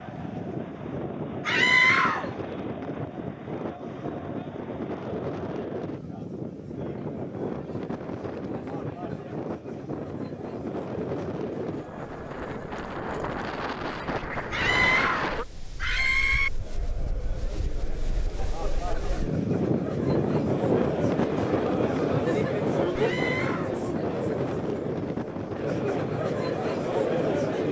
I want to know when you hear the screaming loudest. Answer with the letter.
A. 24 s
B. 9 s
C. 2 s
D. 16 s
C.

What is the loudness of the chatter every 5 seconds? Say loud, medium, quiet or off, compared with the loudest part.
quiet, quiet, quiet, medium, loud, loud.